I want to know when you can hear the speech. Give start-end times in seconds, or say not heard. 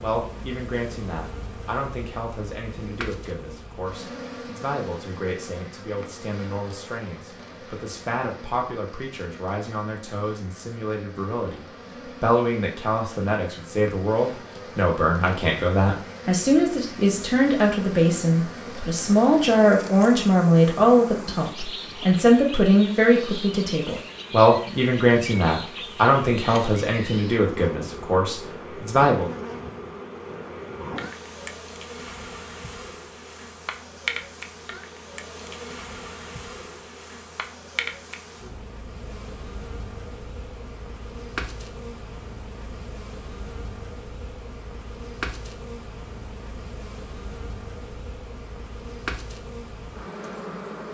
0.0-29.3.